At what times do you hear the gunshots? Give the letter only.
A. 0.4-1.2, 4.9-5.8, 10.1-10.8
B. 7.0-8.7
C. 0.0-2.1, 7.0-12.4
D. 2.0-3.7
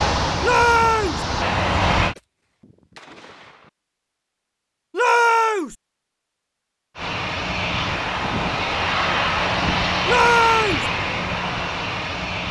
D.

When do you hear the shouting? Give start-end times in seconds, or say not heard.
0.4-1.2, 4.9-5.8, 10.1-10.8.